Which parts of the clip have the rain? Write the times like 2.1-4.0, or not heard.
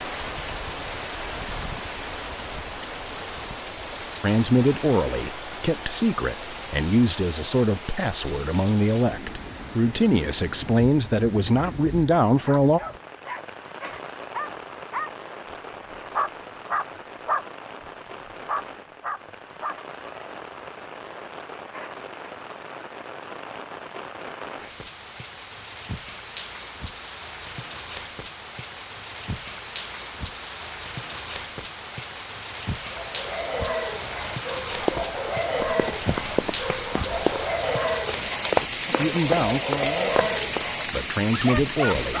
0.0-42.1.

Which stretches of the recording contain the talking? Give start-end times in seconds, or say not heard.
4.2-12.8, 38.9-42.1.